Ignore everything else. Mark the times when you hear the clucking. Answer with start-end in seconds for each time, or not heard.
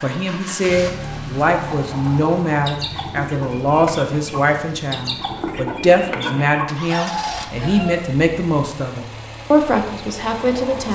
0.7-8.1.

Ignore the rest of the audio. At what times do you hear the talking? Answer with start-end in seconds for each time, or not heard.
0.0-10.8.